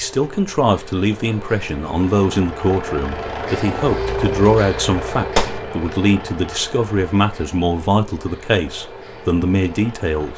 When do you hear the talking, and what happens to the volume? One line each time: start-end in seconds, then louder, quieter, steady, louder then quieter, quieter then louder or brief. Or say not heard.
0.0-10.3 steady.